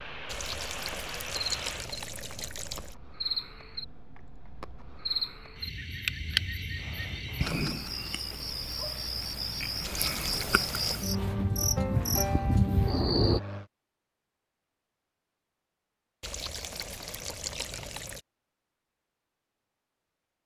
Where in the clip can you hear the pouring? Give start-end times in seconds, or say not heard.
0.2-3.0, 9.8-11.0, 16.2-18.2.